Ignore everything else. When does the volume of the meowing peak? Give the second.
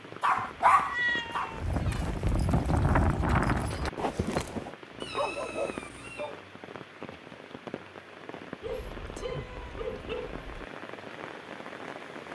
1 s.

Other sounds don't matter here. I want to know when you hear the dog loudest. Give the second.
1 s.